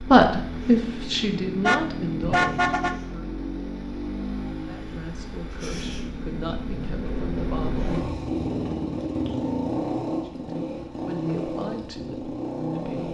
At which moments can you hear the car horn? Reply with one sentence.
The car horn can be heard from 1.6 to 3.0 s.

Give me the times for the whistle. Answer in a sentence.
The whistle can't be heard in this clip.